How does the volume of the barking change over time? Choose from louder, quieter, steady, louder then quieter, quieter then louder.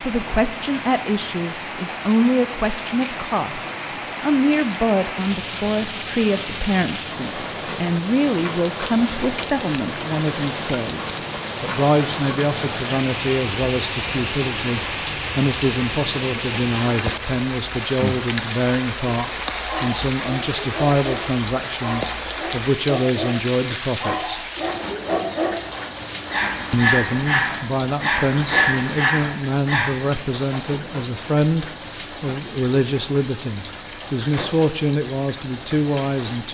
louder.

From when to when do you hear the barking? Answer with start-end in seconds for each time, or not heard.
19.1-29.9.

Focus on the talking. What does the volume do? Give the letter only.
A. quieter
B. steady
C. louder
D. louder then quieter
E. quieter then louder
B.